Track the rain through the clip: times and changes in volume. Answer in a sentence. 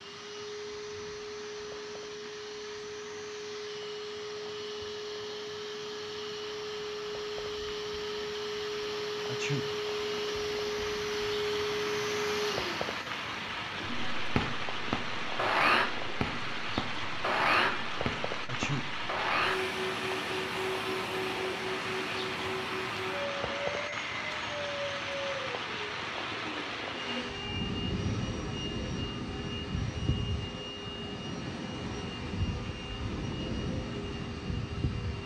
You can hear the rain from 0.0 to 35.2 s, getting louder.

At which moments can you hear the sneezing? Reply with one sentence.
The sneezing can be heard from 9.2 to 9.7 s and from 18.4 to 18.9 s.